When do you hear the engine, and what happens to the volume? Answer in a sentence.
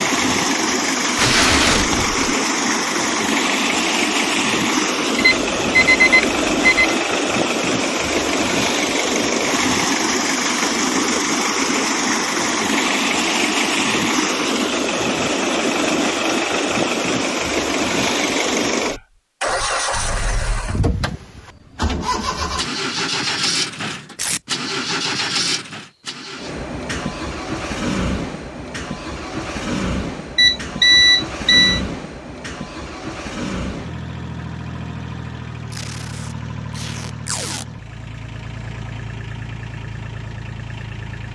You can hear the engine from 0.0 to 41.3 s, getting quieter.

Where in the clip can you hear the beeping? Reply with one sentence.
You can hear the beeping from 5.2 to 7.0 s and from 30.4 to 31.8 s.